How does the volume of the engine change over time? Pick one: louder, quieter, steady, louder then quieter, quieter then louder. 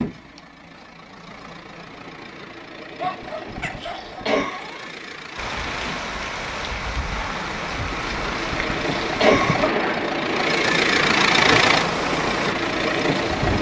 louder.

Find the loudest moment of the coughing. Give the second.
9 s.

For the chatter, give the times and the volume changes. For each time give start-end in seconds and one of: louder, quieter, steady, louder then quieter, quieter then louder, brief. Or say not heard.
not heard.